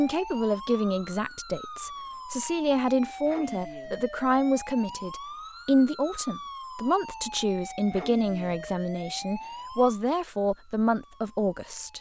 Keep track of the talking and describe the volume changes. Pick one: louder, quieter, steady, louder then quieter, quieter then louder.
steady.